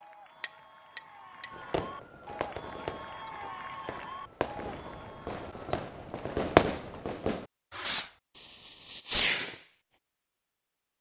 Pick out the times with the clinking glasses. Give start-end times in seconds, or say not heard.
0.4-1.5.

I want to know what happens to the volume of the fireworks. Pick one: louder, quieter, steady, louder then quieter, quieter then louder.
louder then quieter.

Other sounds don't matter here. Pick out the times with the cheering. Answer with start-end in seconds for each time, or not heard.
0.0-5.5.